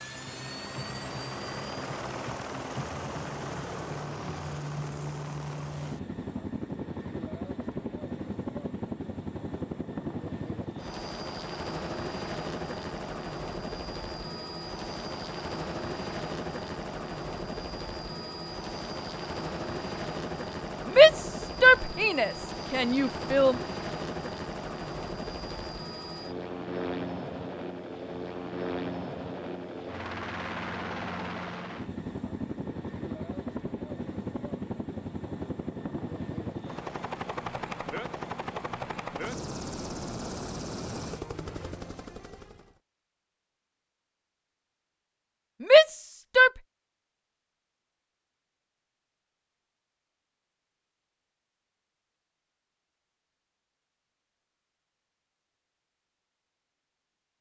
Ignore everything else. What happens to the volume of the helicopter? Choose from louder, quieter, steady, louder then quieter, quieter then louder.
steady.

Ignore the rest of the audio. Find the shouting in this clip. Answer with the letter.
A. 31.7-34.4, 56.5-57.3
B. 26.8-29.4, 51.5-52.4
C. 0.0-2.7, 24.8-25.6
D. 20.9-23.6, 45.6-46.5
D.